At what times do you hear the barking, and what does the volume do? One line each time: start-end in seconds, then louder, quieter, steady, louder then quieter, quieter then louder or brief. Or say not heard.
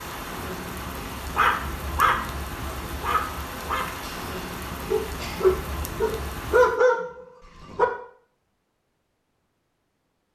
1.4-2.2 brief
3.0-7.8 louder.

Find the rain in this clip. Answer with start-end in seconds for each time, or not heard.
0.0-6.8.